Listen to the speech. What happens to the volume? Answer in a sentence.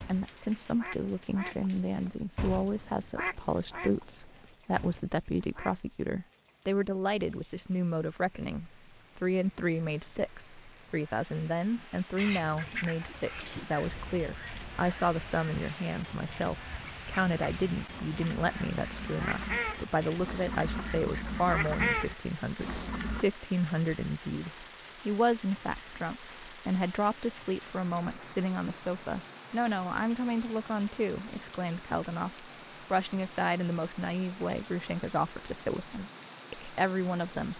The volume of the speech stays about the same.